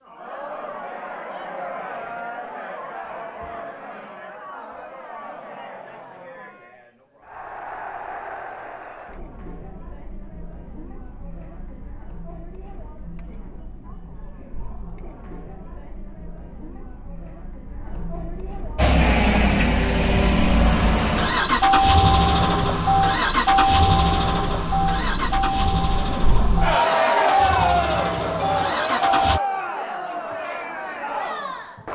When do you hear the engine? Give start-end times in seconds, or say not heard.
18.8-29.4.